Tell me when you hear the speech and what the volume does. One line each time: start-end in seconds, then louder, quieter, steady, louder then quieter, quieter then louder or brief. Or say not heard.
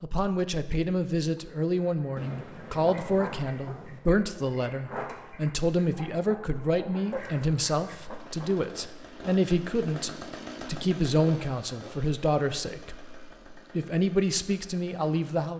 0.0-15.5 steady.